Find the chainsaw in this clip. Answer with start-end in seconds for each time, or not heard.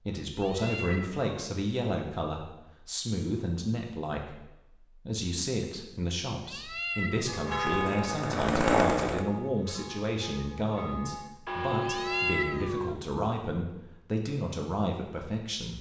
7.6-9.2.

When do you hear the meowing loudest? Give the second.
12 s.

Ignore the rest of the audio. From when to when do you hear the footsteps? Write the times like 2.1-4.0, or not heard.
not heard.